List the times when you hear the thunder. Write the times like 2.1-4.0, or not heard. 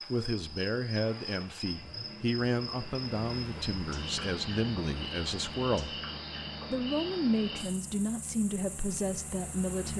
not heard.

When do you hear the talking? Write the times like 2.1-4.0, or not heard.
0.1-6.0, 6.7-9.9.